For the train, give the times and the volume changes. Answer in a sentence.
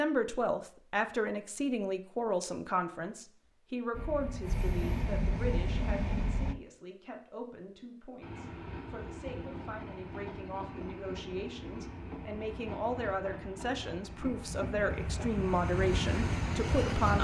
You can hear the train briefly from 3.9 to 6.5 s; and from 8.2 to 17.1 s, getting louder.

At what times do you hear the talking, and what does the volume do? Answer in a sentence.
The talking can be heard from 0.0 to 17.1 s, getting quieter then louder.